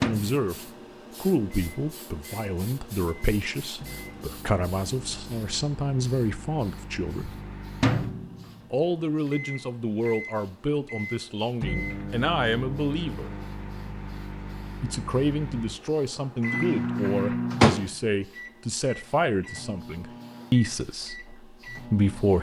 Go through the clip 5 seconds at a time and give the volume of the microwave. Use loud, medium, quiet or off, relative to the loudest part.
medium, medium, medium, loud, quiet.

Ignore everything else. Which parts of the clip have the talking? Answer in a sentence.
You can hear the talking from 0.0 to 0.6 s, from 1.2 to 7.4 s, from 8.7 to 13.3 s and from 14.8 to 22.3 s.